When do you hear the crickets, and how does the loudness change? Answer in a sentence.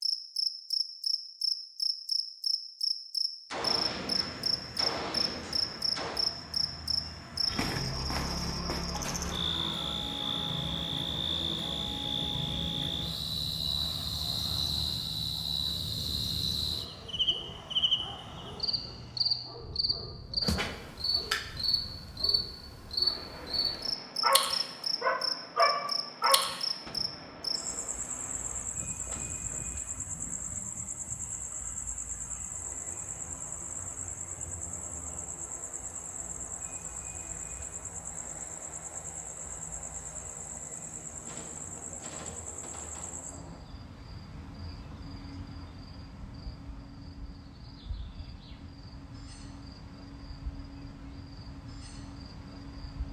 The crickets can be heard from 0.0 to 53.0 s, getting quieter.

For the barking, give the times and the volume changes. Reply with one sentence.
The barking can be heard from 16.6 to 26.6 s, getting louder.